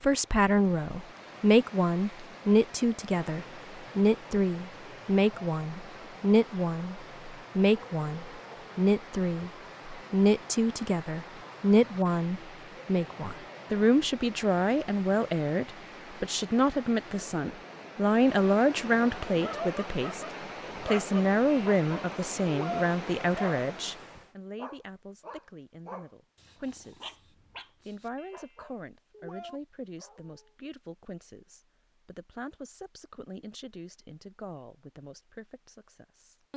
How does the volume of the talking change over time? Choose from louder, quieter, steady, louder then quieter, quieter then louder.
quieter.